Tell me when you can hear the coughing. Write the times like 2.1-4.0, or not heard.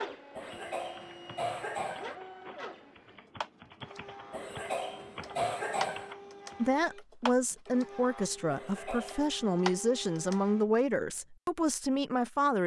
0.3-2.1, 4.3-6.2, 8.5-9.3.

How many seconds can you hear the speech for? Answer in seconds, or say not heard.
6 s.